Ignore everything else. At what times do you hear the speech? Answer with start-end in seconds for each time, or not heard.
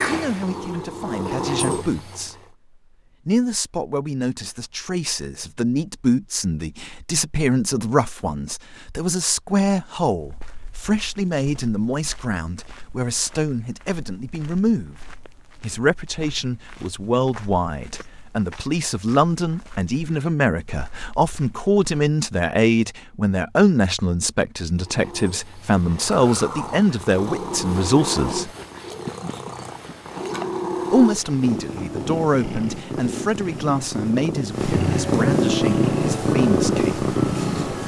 0.1-2.4, 3.2-14.9, 15.6-28.5, 30.9-37.0.